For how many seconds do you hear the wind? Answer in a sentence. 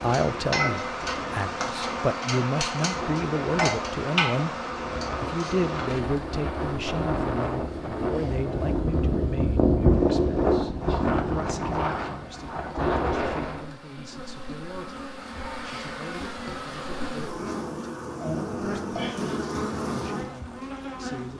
You can hear the wind for 14 seconds altogether.